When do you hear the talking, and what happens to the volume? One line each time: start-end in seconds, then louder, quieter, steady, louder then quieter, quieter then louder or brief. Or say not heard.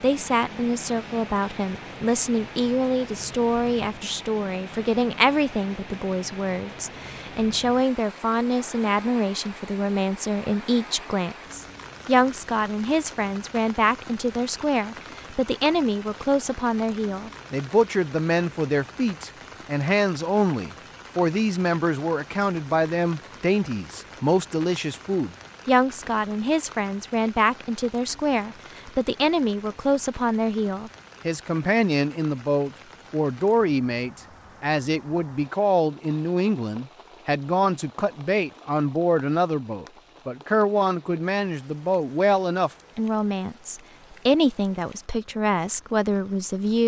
0.0-46.8 steady.